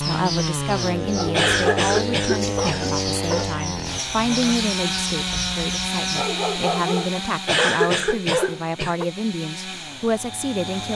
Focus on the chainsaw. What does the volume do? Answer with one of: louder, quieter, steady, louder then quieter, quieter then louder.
quieter.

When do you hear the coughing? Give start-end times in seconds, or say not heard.
1.3-3.0, 7.5-8.9.